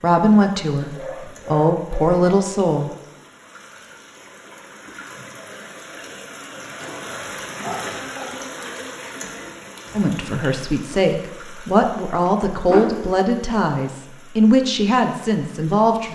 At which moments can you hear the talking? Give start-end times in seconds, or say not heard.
0.0-2.9, 9.9-16.0.